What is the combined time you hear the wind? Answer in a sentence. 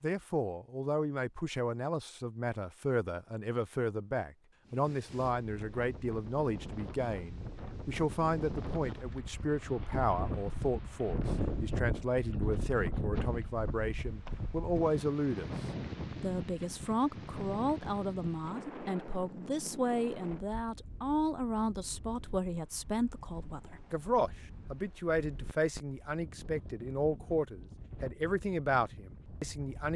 You can hear the wind for 25 seconds altogether.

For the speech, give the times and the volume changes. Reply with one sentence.
The speech can be heard from 0.0 to 15.5 s, at a steady volume; and from 16.2 to 29.9 s, at a steady volume.